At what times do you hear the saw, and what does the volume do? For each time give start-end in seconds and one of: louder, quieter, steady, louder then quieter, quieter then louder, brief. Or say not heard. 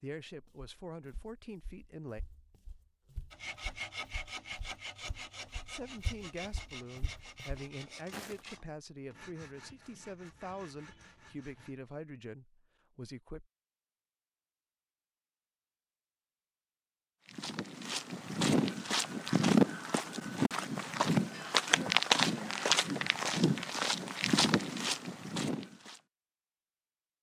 3.3-11.8 quieter.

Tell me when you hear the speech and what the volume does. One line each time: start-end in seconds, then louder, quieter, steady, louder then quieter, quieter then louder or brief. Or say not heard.
0.0-2.2 brief
5.5-13.4 steady.